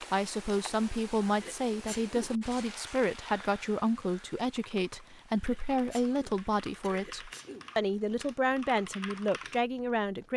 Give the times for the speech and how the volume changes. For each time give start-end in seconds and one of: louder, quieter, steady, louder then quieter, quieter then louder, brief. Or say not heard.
0.0-10.3 steady.